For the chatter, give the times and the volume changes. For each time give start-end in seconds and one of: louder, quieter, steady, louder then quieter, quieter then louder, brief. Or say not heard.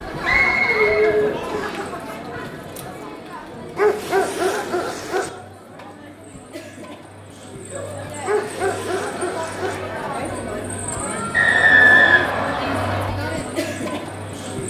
0.0-14.6 quieter then louder.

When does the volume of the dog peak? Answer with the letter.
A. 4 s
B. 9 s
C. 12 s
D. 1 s
A.